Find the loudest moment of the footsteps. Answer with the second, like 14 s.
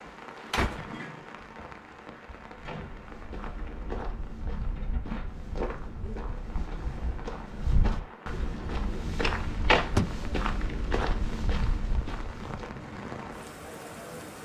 10 s.